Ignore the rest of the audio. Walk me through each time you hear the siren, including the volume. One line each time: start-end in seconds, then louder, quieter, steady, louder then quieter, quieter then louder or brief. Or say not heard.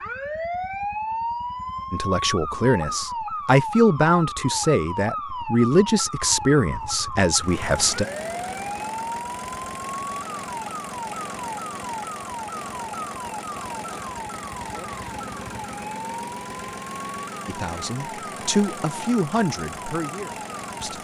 0.0-20.9 quieter.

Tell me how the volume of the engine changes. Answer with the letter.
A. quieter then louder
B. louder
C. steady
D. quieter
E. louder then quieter
C.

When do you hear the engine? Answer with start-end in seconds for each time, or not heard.
7.3-20.9.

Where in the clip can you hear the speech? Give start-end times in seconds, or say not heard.
1.9-8.1, 17.4-20.9.